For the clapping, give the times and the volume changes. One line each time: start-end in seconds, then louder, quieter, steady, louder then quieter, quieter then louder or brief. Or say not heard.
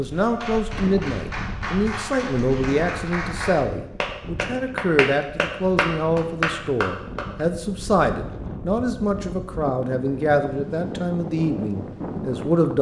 0.1-7.5 louder.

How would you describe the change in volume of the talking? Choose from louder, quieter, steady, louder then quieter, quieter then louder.
steady.